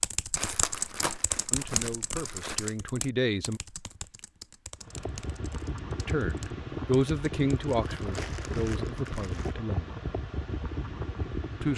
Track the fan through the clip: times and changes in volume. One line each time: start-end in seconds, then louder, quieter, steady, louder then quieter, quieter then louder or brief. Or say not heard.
4.8-11.7 steady.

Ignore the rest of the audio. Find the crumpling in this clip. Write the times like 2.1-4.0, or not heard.
0.3-2.7, 7.9-9.6.